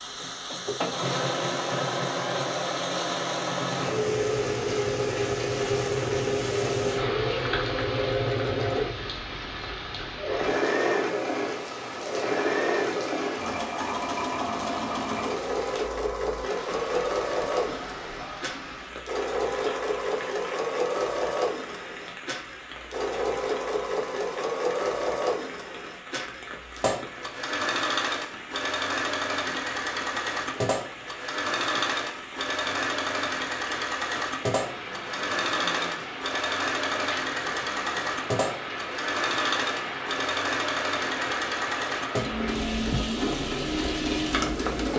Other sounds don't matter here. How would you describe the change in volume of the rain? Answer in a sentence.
The volume of the rain goes down, then up.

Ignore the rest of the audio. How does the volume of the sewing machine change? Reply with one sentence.
The loudness of the sewing machine stays about the same.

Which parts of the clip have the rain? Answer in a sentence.
You can hear the rain from 0.0 to 44.9 s.